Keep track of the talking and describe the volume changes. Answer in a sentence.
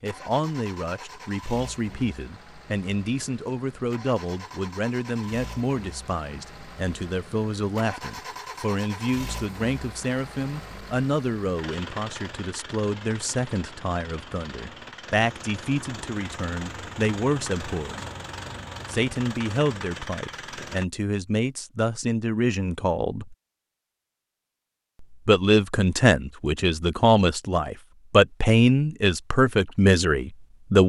The volume of the talking goes up.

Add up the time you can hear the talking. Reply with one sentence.
The talking can be heard for 28 seconds in total.